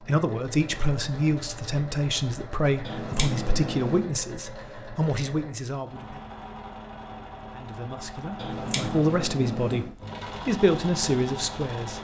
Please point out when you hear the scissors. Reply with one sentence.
You can hear the scissors from 2.9 to 4.0 s and from 8.3 to 9.9 s.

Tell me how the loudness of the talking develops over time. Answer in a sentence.
The loudness of the talking stays about the same.